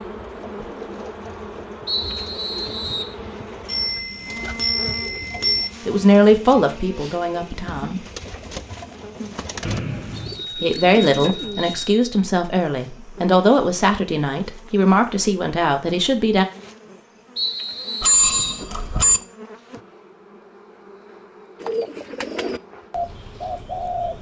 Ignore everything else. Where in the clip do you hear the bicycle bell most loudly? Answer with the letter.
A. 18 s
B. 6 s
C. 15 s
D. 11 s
A.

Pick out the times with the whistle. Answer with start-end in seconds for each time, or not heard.
1.9-3.1, 9.6-10.4, 17.4-18.6.